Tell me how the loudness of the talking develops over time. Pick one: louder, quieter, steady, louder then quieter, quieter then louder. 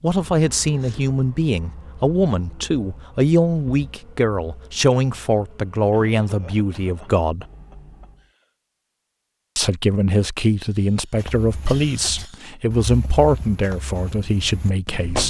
steady.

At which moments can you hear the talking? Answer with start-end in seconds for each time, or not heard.
0.0-7.5, 9.6-15.2.